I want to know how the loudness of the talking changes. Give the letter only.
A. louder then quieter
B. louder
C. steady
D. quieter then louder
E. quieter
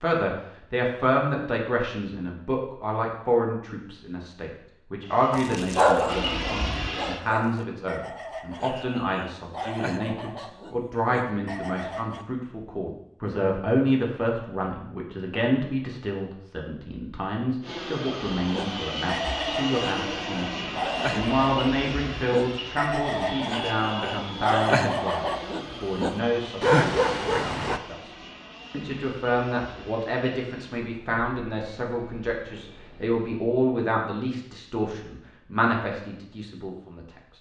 C.